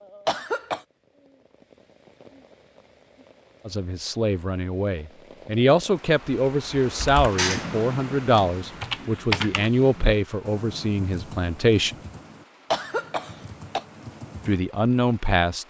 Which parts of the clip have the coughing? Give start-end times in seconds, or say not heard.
0.2-0.8, 12.7-13.8.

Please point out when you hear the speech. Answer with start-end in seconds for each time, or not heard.
3.6-11.9, 14.4-15.6.